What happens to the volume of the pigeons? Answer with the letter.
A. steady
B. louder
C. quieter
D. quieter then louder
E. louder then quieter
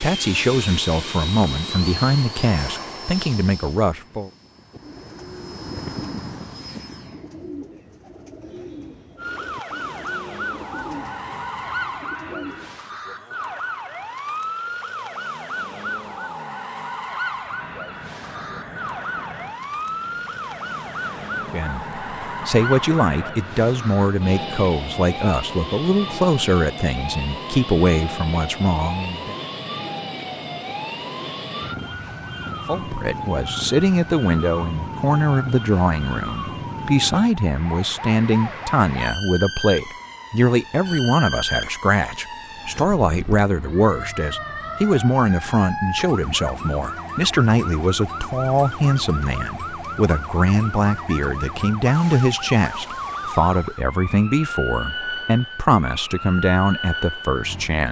A.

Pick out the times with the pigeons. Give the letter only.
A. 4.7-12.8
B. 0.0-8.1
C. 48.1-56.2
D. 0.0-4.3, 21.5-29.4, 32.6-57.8
A.